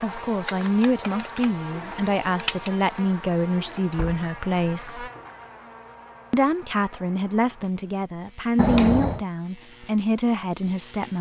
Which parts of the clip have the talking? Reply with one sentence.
The talking can be heard from 0.0 to 5.1 s and from 6.3 to 11.1 s.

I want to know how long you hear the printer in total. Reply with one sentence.
You can't hear the printer here.